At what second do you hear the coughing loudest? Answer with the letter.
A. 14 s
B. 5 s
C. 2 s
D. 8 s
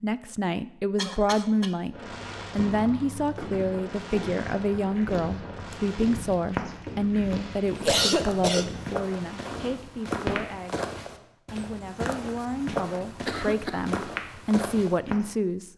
D.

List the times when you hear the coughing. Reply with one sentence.
You can hear the coughing from 0.9 to 1.7 s, from 7.8 to 8.7 s and from 13.0 to 13.8 s.